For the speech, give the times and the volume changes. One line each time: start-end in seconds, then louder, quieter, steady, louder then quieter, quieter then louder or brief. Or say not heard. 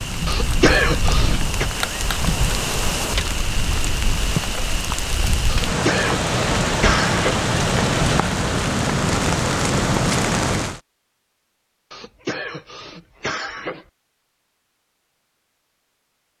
not heard.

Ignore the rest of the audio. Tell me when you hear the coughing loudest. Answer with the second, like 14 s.
1 s.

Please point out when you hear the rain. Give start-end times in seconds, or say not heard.
0.0-10.8.